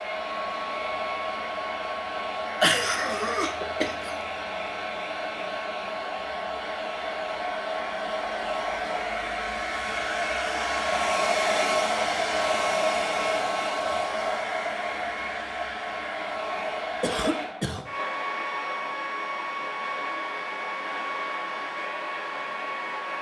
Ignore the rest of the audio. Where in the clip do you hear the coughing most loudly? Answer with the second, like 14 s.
3 s.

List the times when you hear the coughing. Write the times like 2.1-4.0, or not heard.
2.6-4.1, 17.0-17.9.